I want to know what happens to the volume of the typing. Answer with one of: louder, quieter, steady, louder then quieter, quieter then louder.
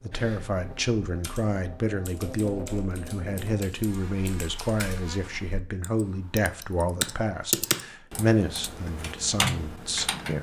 louder.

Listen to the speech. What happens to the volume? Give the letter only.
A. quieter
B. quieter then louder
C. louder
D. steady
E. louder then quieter
D.